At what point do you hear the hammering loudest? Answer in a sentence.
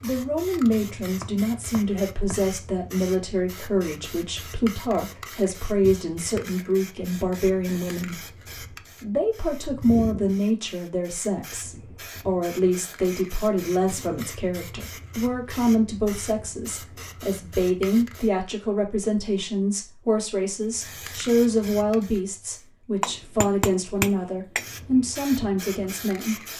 The loudest moment of the hammering is at 24 seconds.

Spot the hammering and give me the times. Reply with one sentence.
The hammering can be heard from 1.0 to 2.5 s and from 23.0 to 24.8 s.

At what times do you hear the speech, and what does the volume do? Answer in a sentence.
You can hear the speech from 0.0 to 26.4 s, at a steady volume.